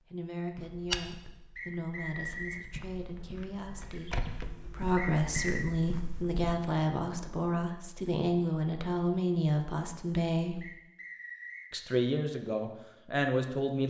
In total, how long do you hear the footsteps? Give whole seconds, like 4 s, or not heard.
6 s.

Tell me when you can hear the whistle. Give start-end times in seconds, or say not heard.
1.6-2.6, 5.0-5.7, 10.6-11.7.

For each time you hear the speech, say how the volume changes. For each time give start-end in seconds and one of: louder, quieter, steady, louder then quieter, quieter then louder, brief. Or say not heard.
0.1-10.7 louder
11.7-13.8 brief.